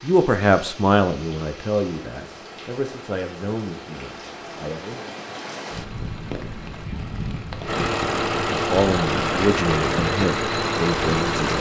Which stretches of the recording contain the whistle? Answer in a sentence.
The whistle can't be heard in this clip.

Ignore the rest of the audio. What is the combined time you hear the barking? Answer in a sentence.
The barking can't be heard in this clip.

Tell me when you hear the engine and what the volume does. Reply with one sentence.
You can hear the engine from 0.0 to 11.5 s, getting louder.